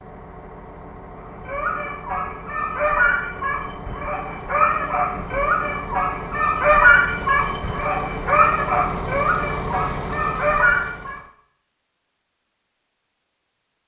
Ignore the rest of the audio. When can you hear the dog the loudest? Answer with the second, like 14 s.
7 s.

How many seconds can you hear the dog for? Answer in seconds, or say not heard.
10 s.